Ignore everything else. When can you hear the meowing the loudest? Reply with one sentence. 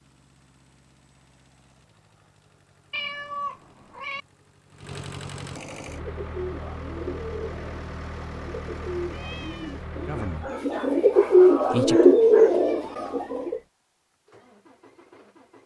The loudest moment of the meowing is at 3 seconds.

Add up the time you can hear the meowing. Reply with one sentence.
The meowing can be heard for 2 seconds in total.